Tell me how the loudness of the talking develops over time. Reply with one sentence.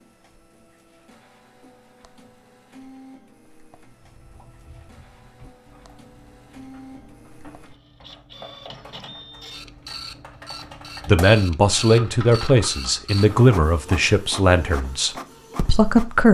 The volume of the talking goes down.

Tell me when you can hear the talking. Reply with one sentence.
You can hear the talking from 11.1 to 16.2 s.